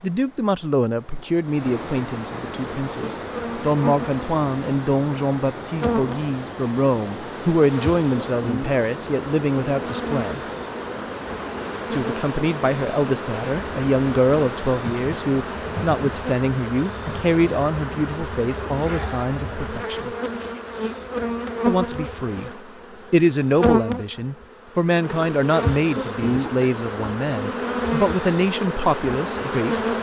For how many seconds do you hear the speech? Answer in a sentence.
The speech can be heard for 27 seconds in total.